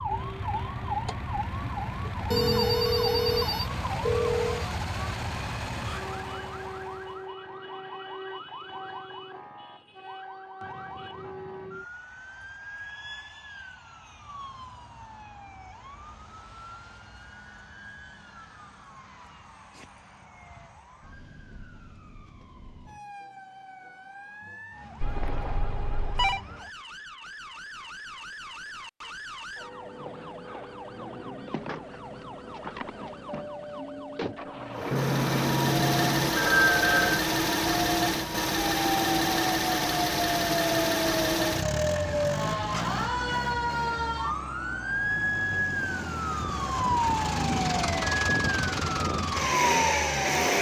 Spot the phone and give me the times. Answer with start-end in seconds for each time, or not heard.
2.3-4.7, 25.0-26.4, 34.9-37.2.